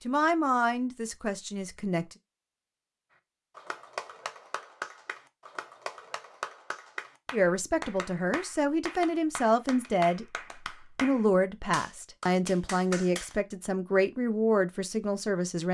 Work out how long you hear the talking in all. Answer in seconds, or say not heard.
10 s.